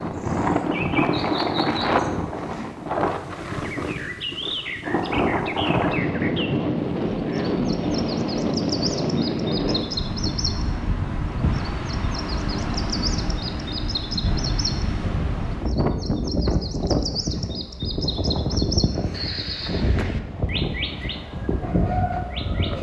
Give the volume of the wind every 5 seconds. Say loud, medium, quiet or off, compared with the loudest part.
loud, loud, medium, loud, medium.